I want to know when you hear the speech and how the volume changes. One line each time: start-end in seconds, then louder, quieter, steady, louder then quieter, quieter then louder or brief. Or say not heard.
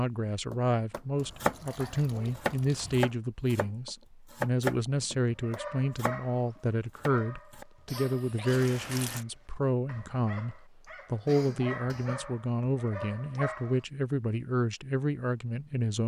0.0-16.0 steady.